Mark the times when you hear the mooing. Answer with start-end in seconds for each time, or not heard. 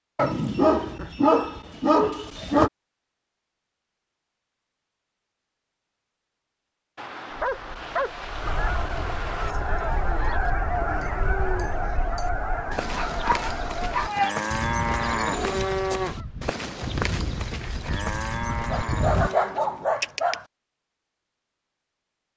9.3-19.8.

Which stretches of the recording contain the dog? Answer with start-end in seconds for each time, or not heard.
0.1-2.7, 7.0-9.6, 12.9-14.4, 18.7-20.4.